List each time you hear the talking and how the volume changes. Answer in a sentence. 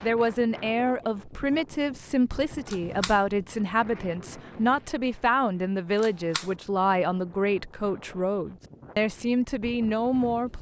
The talking can be heard from 0.0 to 10.5 s, at a steady volume.